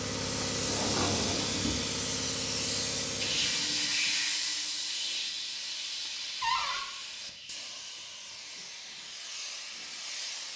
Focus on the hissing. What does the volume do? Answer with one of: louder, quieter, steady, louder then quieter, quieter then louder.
quieter.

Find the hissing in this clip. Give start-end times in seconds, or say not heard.
0.0-10.5.